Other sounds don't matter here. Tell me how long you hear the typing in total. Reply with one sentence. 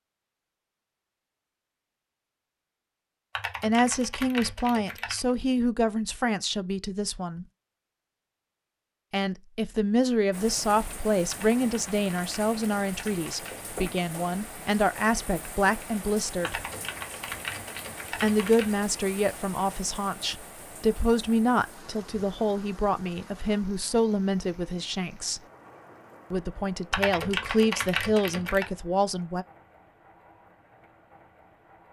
The typing can be heard for 9 seconds in total.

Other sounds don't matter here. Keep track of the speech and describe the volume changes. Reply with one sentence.
The volume of the speech stays about the same.